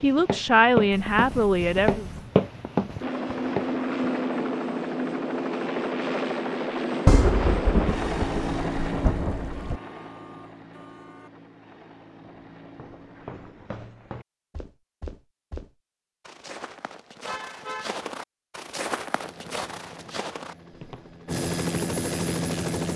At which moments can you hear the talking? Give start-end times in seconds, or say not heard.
0.0-2.0.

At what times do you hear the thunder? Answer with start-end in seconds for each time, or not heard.
7.0-9.8.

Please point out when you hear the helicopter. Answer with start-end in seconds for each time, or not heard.
3.0-13.8, 19.2-22.9.